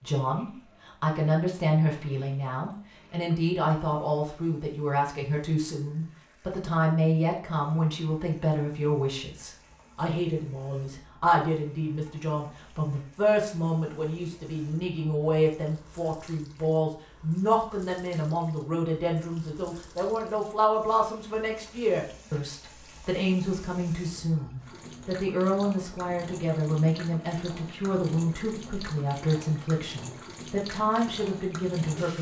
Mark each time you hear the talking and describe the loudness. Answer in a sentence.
You can hear the talking from 0.0 to 32.1 s, at a steady volume.